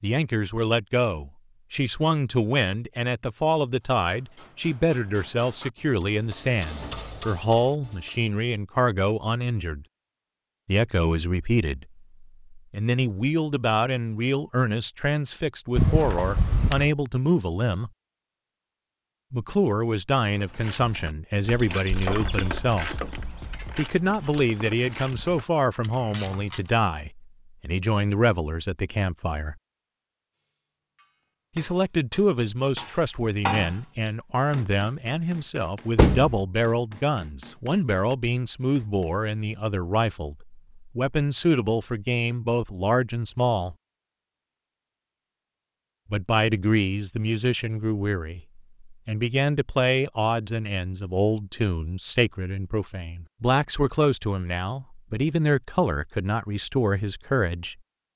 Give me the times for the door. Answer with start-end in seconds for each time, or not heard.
15.8-16.9, 36.0-36.4.